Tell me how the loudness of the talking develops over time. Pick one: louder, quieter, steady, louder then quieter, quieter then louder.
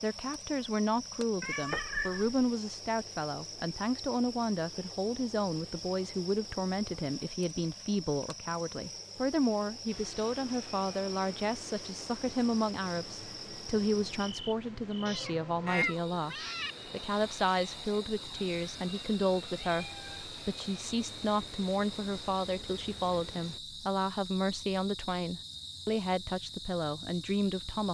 steady.